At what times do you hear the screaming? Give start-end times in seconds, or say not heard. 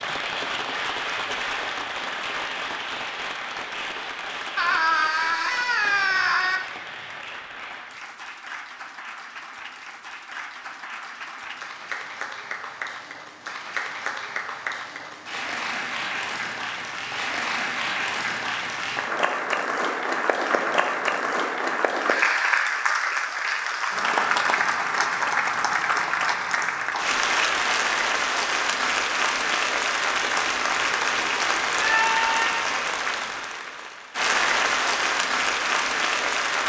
4.5-6.6, 31.8-32.6.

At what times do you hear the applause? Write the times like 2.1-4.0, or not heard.
0.0-36.6.